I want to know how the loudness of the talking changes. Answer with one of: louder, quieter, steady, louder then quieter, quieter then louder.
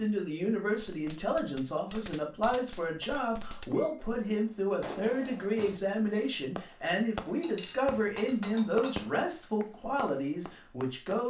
steady.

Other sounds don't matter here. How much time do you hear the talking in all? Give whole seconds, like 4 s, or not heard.
11 s.